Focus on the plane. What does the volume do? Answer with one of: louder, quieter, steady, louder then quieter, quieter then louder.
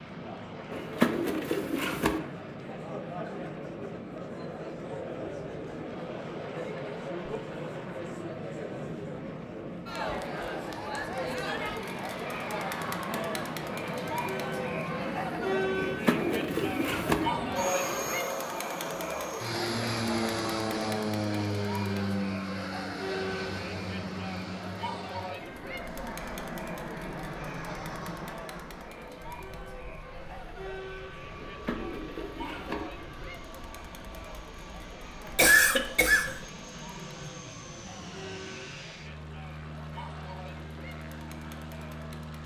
louder then quieter.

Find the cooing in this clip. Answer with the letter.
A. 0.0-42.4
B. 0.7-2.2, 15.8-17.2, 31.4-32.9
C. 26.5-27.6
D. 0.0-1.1
B.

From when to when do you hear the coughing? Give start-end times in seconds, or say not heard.
35.2-36.4.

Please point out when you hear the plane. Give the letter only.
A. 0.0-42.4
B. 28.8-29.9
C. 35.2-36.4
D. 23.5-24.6
A.